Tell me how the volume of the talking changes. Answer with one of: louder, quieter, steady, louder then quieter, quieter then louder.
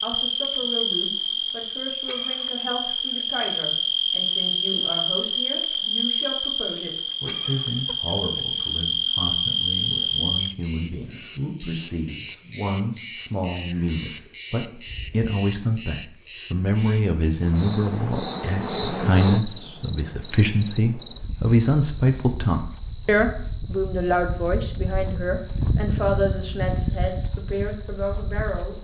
louder.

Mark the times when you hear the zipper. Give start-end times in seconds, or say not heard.
not heard.